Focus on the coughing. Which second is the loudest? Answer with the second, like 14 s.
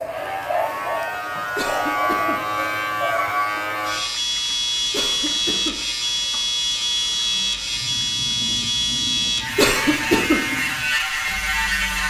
10 s.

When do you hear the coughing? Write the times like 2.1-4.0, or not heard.
1.6-2.4, 4.9-5.8, 9.6-10.4.